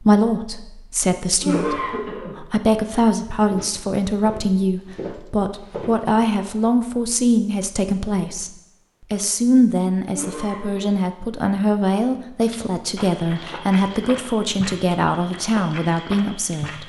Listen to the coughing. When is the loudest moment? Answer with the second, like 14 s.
2 s.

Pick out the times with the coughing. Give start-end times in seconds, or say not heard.
1.4-2.4, 10.1-11.0.